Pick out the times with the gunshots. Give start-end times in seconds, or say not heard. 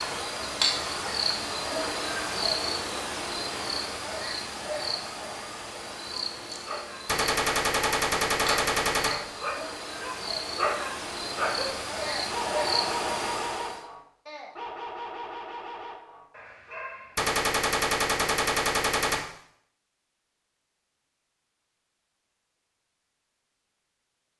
7.0-9.1, 17.1-19.1.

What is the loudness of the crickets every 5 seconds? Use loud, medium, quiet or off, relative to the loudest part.
loud, medium, loud, off, off.